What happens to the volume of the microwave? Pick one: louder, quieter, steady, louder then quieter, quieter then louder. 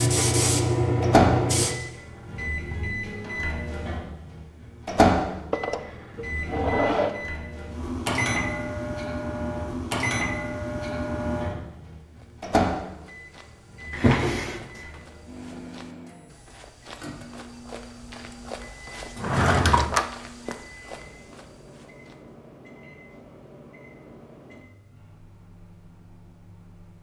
quieter.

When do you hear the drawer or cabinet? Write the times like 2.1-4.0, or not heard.
5.5-7.2, 13.9-14.8, 19.1-20.1.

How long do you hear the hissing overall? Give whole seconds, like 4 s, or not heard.
2 s.